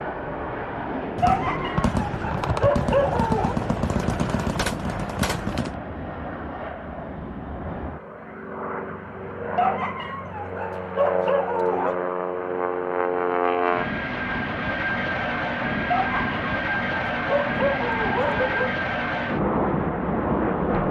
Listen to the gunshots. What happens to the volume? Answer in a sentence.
The volume of the gunshots stays about the same.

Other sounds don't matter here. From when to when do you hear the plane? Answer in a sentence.
You can hear the plane from 0.0 to 20.8 s.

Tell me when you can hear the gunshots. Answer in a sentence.
The gunshots can be heard from 1.1 to 5.8 s.